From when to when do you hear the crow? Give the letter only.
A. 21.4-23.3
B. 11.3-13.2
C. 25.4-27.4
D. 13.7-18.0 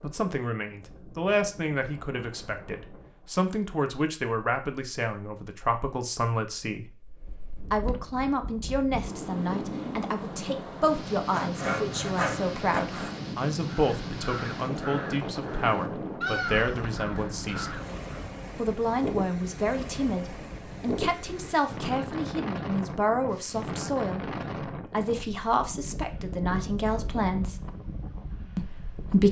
D.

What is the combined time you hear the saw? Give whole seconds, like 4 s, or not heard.
2 s.